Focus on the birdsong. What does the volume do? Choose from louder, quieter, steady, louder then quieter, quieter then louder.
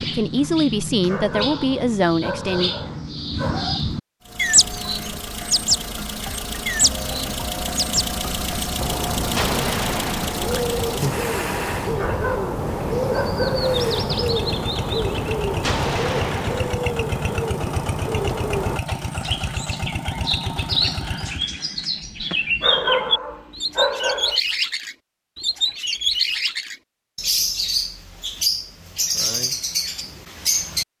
steady.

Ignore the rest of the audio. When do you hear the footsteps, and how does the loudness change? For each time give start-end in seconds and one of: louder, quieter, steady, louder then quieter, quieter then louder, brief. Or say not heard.
not heard.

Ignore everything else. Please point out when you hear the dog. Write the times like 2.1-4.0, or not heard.
1.1-3.9, 11.9-13.7, 22.6-24.4.